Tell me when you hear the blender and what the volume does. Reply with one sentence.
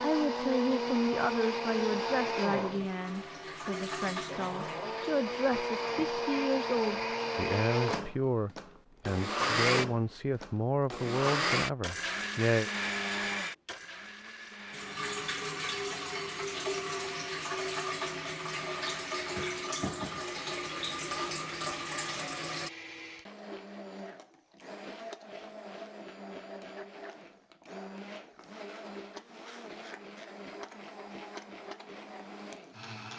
The blender can be heard from 0.0 to 33.1 s, getting quieter.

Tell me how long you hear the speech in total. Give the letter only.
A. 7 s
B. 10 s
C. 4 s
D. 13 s
D.